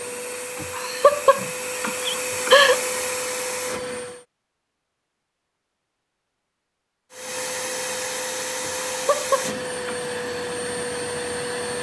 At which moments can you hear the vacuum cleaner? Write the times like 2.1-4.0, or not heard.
0.0-4.2, 7.1-11.7.